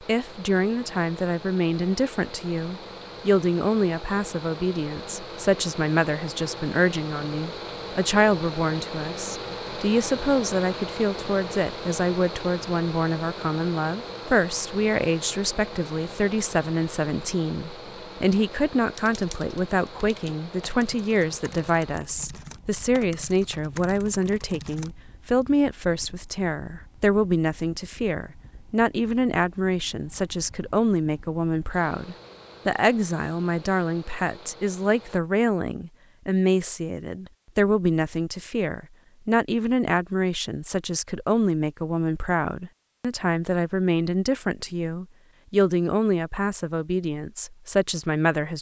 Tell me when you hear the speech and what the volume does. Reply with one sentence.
The speech can be heard from 0.0 to 48.5 s, at a steady volume.